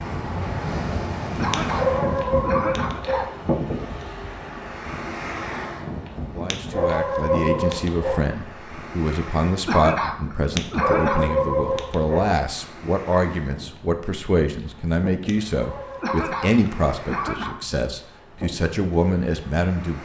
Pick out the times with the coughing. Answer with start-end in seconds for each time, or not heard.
1.4-3.3, 9.7-11.4, 16.0-17.6.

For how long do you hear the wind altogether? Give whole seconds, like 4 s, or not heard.
20 s.